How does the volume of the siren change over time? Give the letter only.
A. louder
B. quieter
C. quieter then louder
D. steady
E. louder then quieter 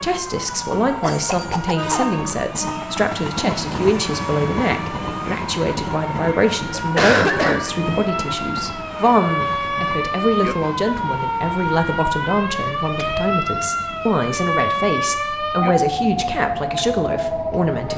A.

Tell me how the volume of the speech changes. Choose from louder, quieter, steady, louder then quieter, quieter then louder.
steady.